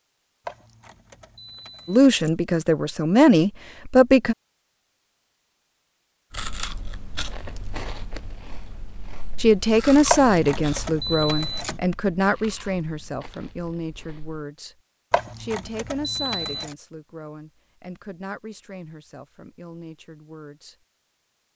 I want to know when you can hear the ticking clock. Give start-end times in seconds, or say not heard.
not heard.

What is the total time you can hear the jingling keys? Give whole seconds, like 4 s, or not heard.
5 s.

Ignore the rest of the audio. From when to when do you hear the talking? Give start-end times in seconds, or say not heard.
1.9-4.3, 9.3-14.8, 15.4-20.8.